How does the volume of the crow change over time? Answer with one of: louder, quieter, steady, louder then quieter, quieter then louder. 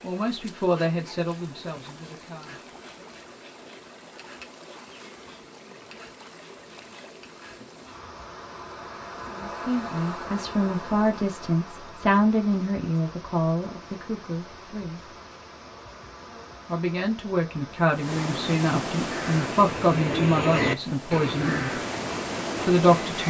louder then quieter.